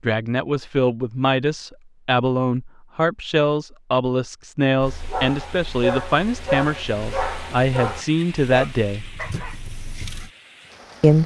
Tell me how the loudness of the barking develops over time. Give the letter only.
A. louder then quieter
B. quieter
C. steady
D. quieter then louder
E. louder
B.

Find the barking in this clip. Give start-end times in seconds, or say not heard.
4.8-10.3.